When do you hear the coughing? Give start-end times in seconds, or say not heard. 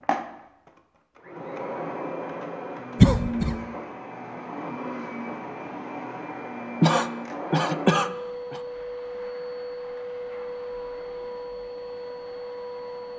3.0-3.5, 6.8-8.6.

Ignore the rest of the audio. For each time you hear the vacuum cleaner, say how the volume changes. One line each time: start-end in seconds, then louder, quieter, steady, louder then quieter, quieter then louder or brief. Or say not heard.
0.0-13.1 steady.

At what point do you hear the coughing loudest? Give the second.
3 s.